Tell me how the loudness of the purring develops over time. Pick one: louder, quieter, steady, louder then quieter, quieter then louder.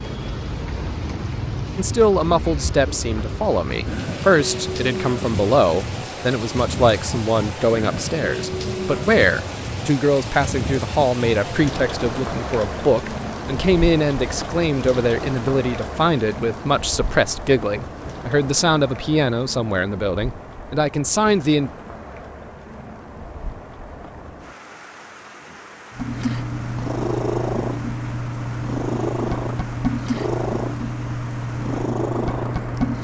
steady.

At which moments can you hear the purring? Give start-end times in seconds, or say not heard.
25.9-33.0.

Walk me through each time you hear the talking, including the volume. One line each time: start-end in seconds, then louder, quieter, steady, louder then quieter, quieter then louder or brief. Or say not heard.
1.8-21.7 steady.